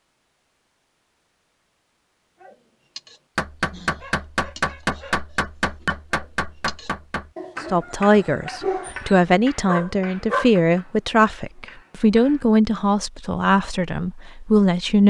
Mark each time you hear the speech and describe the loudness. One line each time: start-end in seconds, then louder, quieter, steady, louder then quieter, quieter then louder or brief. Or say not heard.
7.7-15.0 steady.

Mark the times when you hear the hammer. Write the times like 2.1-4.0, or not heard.
3.4-12.4.